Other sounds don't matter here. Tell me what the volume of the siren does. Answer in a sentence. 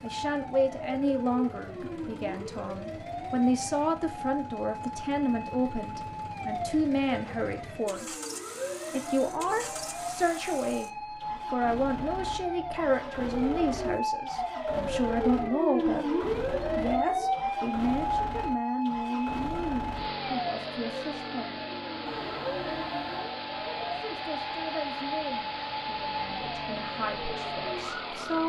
The loudness of the siren goes up, then down.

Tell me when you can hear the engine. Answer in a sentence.
You can hear the engine from 0.0 to 28.4 s.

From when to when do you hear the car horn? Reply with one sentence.
The car horn can be heard from 8.9 to 10.2 s and from 22.1 to 23.4 s.